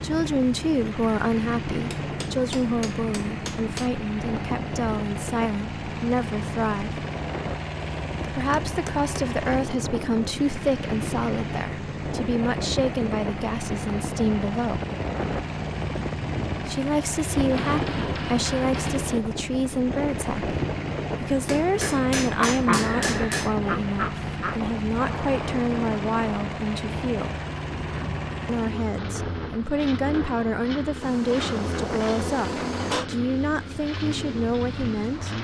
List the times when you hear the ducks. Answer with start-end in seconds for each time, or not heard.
22.4-24.6.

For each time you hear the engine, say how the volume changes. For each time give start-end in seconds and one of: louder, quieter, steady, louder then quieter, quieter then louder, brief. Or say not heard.
0.0-35.3 steady.